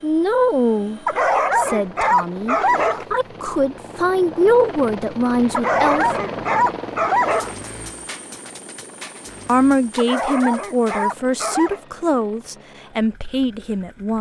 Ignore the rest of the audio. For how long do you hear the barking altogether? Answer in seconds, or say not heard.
6 s.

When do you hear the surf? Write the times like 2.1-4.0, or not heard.
not heard.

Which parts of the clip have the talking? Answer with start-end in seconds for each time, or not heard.
0.0-6.1, 9.4-14.1.